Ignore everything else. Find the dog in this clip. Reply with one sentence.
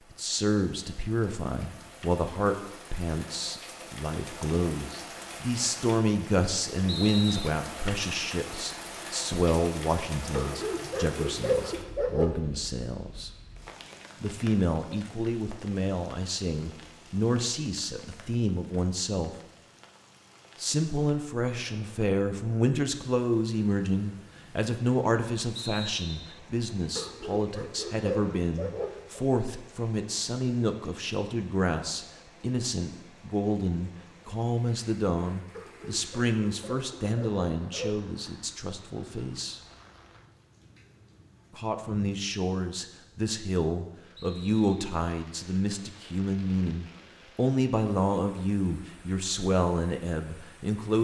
The dog can be heard from 10.3 to 12.3 s, from 26.9 to 29.2 s and from 35.5 to 38.0 s.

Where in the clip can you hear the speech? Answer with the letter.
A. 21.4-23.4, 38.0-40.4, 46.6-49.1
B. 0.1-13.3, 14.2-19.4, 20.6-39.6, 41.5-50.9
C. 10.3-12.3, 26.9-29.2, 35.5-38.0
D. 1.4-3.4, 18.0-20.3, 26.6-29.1
B.